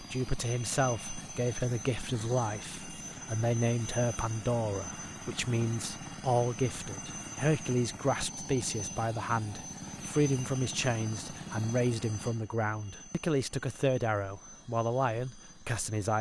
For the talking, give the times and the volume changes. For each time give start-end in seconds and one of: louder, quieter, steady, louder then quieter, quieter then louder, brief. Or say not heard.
0.0-16.1 steady.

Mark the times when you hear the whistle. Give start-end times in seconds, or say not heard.
not heard.